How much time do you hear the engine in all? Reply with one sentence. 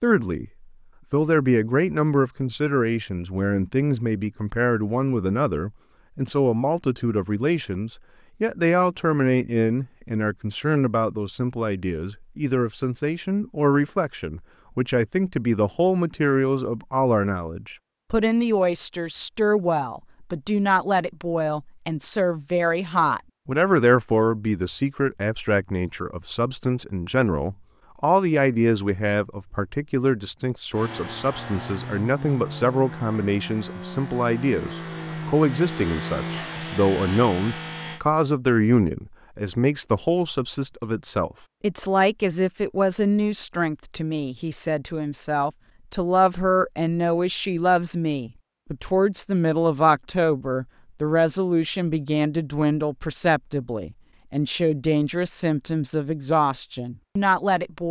You can hear the engine for 7 seconds altogether.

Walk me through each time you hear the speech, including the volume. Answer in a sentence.
You can hear the speech from 0.0 to 57.8 s, at a steady volume.